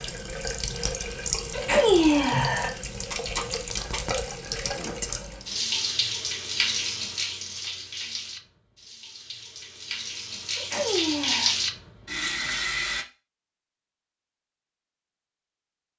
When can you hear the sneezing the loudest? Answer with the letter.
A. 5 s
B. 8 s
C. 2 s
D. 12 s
C.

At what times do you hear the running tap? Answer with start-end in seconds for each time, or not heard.
0.0-13.1.